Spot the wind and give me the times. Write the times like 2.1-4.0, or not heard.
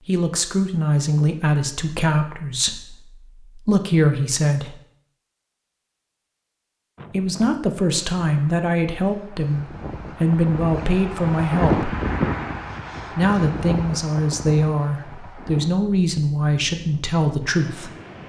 7.0-18.2.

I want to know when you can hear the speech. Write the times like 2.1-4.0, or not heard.
0.1-4.8, 7.1-11.9, 13.1-17.9.